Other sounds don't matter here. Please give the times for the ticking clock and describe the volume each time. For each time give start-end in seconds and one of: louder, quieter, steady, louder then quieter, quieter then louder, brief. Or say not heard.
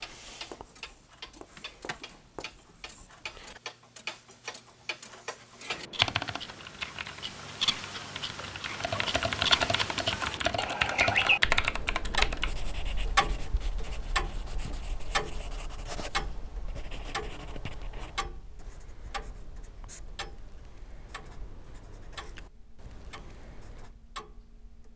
0.0-24.9 louder then quieter.